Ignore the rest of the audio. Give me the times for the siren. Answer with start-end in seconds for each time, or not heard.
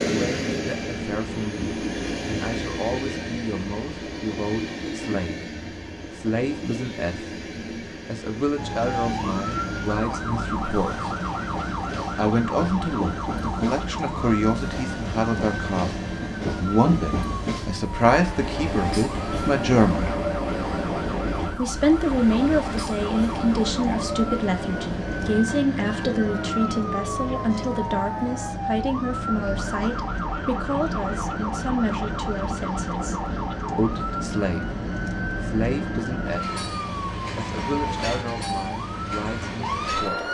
8.6-40.2.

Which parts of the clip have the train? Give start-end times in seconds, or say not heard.
0.0-40.2.